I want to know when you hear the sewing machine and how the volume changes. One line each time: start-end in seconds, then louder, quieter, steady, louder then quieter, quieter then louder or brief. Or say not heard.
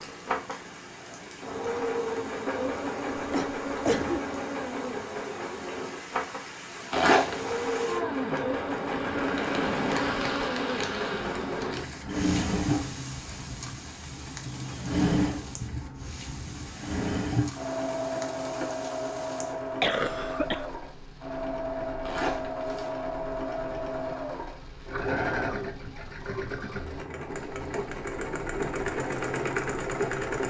0.0-30.4 steady.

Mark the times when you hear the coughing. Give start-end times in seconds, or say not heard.
3.1-4.2, 19.5-20.8.